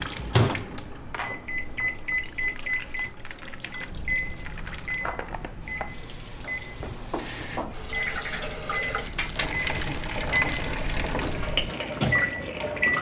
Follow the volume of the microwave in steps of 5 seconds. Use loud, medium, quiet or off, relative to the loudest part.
loud, medium, loud.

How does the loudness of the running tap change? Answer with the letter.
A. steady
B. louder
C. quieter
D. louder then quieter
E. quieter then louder
B.